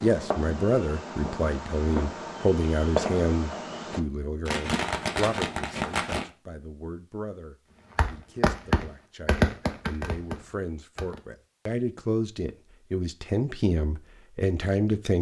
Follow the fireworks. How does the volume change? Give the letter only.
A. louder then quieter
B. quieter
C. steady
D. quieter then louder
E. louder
E.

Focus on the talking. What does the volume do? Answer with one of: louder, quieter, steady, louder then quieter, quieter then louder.
quieter then louder.